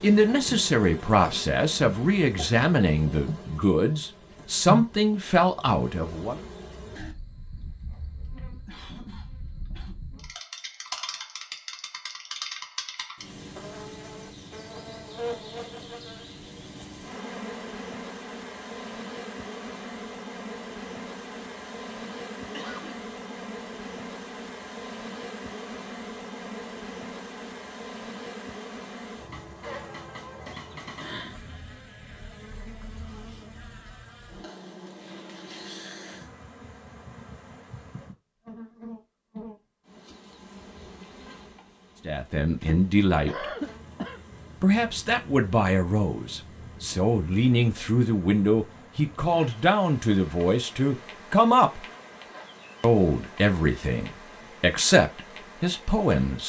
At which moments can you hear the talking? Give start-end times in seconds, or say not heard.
0.0-6.4, 42.0-43.5, 44.6-51.9, 52.8-56.4.